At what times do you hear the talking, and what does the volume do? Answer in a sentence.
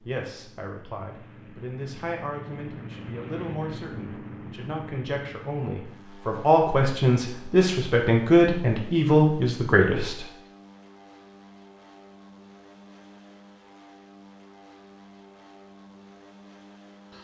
You can hear the talking from 0.0 to 10.2 s, getting louder.